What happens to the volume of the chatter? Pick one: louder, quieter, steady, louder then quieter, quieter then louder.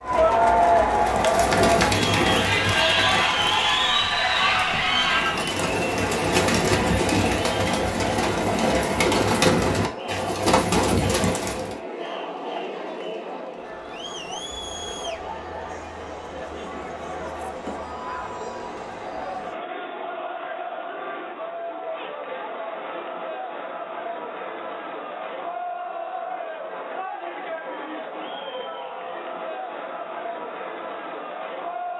quieter.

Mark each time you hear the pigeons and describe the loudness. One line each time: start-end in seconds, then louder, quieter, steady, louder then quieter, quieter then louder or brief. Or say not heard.
1.0-11.8 quieter then louder.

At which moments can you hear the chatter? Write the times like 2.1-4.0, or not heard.
0.0-31.9.